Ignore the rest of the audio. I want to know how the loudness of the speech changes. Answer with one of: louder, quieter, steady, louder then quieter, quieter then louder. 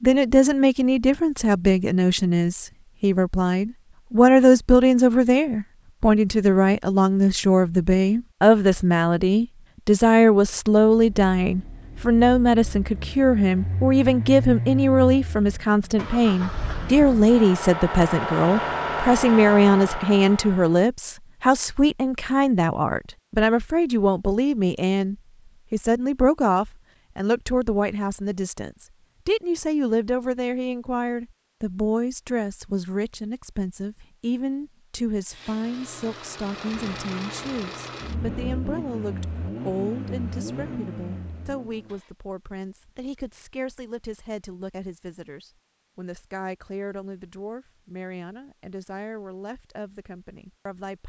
quieter.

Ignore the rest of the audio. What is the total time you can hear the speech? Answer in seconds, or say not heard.
51 s.